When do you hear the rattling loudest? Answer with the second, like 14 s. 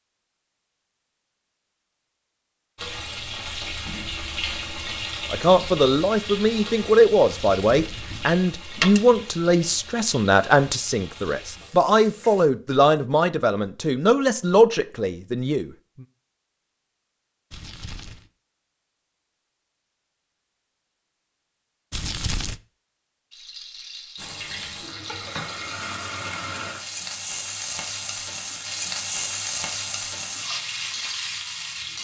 9 s.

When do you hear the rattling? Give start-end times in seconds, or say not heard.
8.8-9.2, 23.3-25.8.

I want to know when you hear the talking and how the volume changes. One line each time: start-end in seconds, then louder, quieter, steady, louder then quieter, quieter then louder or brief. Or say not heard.
5.3-15.7 steady.